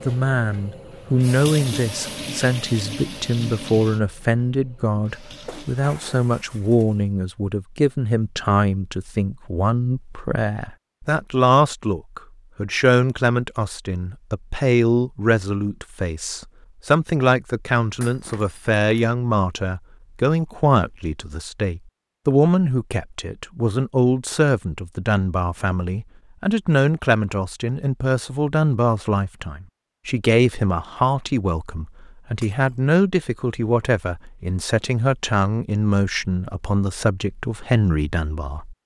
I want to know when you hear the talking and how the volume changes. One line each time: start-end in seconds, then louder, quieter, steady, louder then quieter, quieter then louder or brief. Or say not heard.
0.1-38.8 steady.